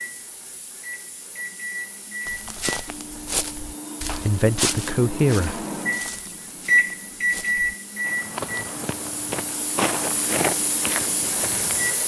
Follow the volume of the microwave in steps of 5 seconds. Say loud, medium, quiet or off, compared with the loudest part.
medium, loud, medium.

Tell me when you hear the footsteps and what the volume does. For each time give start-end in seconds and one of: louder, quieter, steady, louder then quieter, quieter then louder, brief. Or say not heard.
2.2-11.9 quieter then louder.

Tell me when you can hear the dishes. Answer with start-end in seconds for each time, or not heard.
not heard.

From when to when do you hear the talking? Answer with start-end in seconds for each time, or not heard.
4.1-5.7.